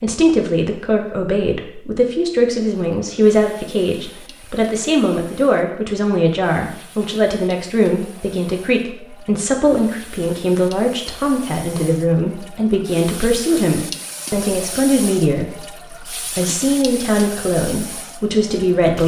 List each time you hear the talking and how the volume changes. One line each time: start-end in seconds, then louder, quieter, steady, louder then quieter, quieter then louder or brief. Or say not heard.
0.0-19.0 steady.